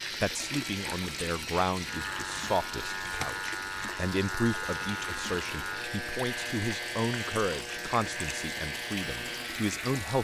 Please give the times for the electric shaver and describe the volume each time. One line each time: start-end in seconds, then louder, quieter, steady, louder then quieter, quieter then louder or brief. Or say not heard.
0.0-10.1 steady.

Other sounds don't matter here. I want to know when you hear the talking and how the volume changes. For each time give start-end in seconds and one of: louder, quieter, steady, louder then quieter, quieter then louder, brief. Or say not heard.
0.2-10.1 steady.